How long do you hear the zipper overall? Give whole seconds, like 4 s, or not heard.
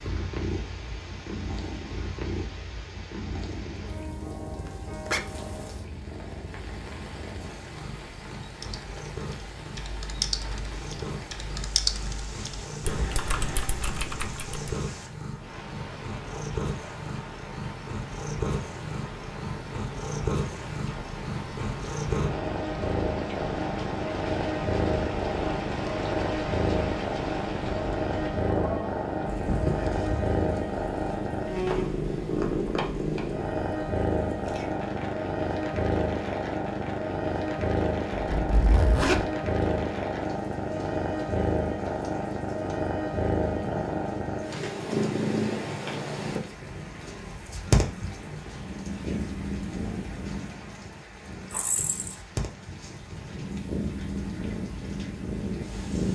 3 s.